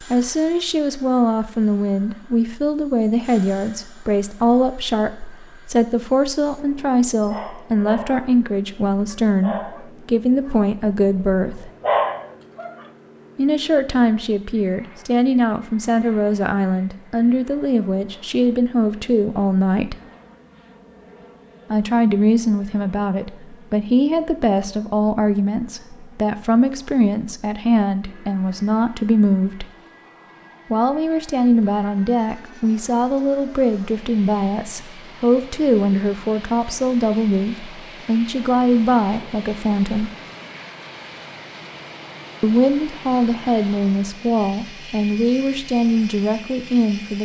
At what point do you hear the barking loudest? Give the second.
12 s.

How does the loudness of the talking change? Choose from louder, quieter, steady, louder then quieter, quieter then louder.
steady.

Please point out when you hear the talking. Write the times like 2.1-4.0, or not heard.
0.1-11.7, 13.3-19.9, 21.7-29.6, 30.7-40.1, 42.4-47.2.